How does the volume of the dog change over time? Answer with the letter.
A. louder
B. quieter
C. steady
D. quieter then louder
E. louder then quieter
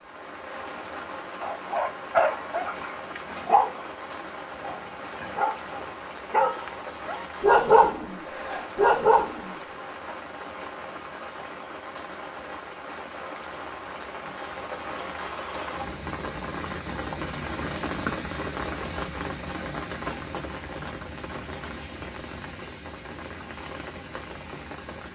D.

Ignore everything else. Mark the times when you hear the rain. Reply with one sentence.
The rain can be heard from 0.0 to 25.1 s.